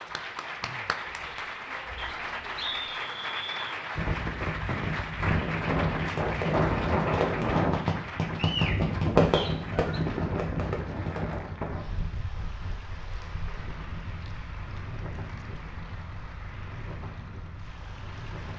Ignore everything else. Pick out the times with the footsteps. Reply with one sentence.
You can't hear the footsteps here.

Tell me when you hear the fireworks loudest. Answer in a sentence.
The volume of the fireworks peaks at 9 seconds.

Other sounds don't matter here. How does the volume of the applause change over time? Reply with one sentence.
The volume of the applause goes down.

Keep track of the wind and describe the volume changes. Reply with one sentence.
The volume of the wind goes down.